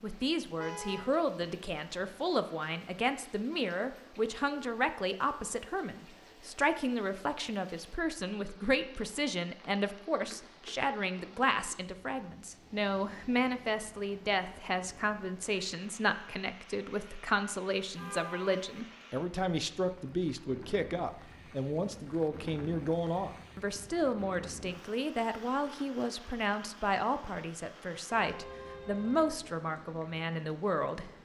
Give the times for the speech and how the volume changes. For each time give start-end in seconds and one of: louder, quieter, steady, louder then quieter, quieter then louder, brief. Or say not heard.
0.0-31.1 steady.